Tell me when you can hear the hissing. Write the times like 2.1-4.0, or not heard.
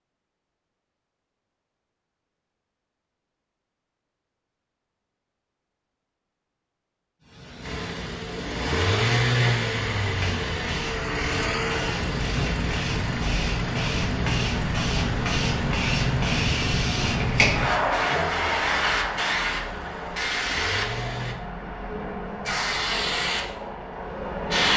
7.2-24.7.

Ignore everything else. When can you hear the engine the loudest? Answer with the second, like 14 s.
9 s.